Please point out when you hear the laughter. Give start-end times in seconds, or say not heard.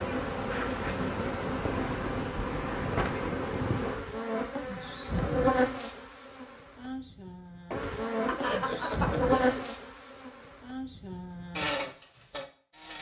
8.2-9.6.